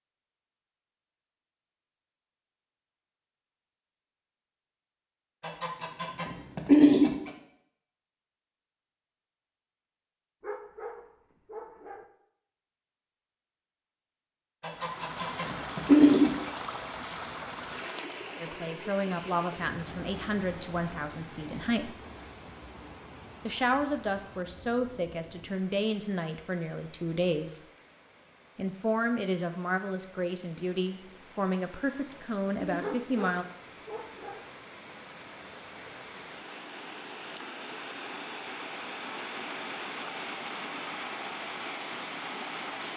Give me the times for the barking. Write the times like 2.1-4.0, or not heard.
10.4-12.1, 32.8-34.5.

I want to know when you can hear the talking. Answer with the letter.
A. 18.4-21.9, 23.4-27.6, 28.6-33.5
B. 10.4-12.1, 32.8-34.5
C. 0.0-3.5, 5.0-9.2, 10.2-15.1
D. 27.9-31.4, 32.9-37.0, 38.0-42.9
A.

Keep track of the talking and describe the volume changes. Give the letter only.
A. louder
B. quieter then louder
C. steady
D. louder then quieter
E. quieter
C.